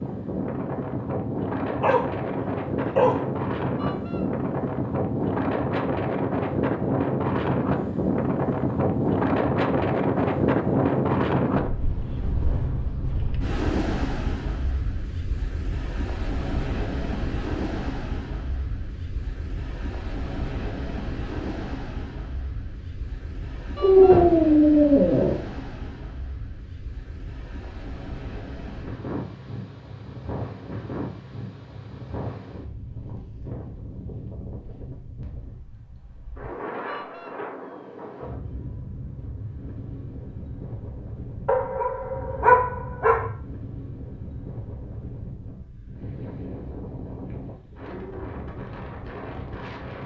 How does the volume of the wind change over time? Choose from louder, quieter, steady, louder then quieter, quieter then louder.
quieter.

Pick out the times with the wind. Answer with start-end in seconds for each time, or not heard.
0.0-50.0.